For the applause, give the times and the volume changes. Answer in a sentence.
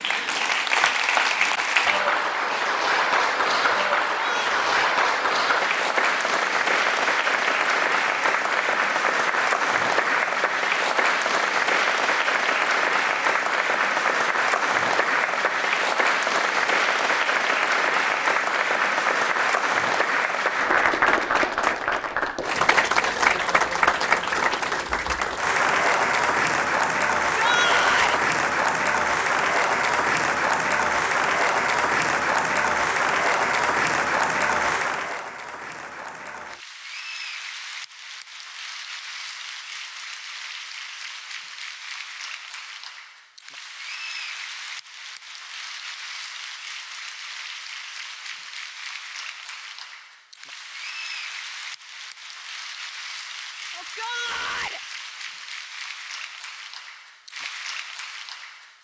You can hear the applause from 0.0 to 58.7 s, getting quieter.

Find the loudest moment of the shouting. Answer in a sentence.
The volume of the shouting peaks at 28 seconds.